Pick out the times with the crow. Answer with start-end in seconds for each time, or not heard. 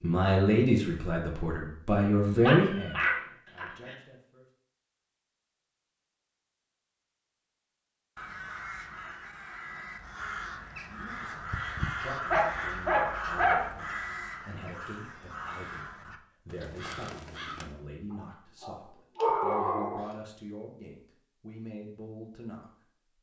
8.2-17.8.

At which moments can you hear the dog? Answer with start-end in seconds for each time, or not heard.
2.4-4.0, 12.3-13.8, 18.1-20.1.